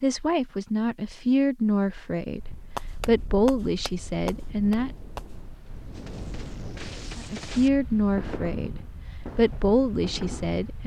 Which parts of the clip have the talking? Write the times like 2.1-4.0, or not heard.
0.0-4.9, 7.2-10.8.